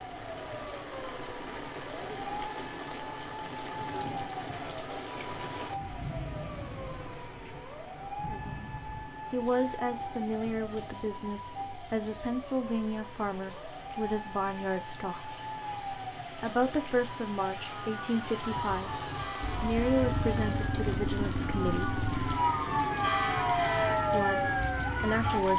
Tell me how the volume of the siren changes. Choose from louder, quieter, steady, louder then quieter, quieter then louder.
louder.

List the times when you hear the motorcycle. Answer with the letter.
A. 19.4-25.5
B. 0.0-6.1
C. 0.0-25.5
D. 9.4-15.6
A.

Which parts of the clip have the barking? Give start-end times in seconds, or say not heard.
not heard.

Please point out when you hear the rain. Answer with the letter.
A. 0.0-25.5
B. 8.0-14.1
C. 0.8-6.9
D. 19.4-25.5
A.